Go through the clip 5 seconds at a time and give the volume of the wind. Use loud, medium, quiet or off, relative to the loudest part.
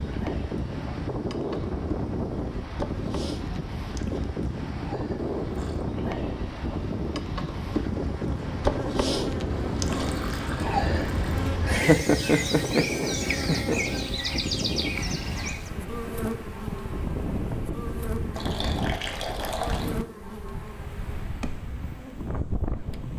loud, loud, loud, loud, medium.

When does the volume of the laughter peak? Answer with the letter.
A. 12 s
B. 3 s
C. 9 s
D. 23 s
A.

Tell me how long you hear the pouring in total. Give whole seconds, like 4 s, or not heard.
4 s.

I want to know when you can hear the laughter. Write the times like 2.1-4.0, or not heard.
11.7-13.8.